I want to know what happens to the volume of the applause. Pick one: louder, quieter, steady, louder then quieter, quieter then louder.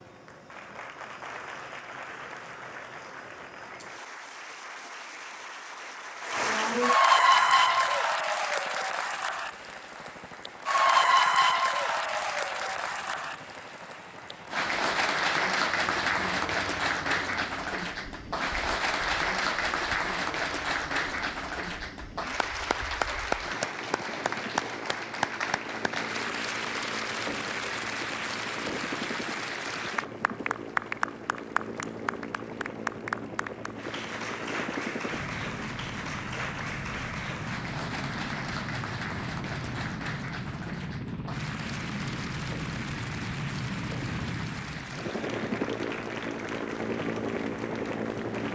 quieter.